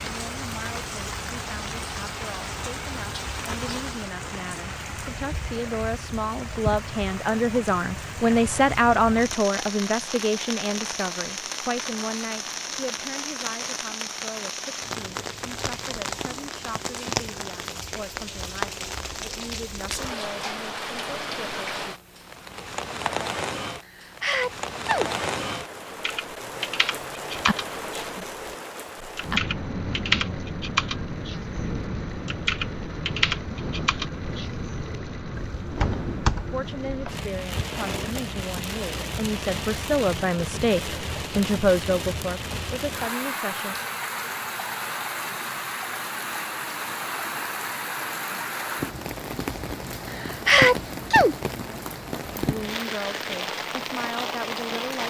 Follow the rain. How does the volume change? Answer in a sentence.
The loudness of the rain stays about the same.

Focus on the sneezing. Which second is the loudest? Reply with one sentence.
The volume of the sneezing peaks at 51 seconds.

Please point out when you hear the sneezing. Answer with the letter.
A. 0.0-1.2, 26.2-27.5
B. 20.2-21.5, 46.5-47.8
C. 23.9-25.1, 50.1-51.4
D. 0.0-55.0
C.